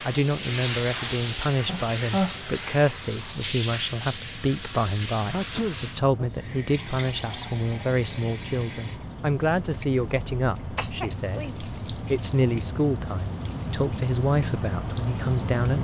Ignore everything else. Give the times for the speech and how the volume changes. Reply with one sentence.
You can hear the speech from 0.0 to 15.7 s, at a steady volume.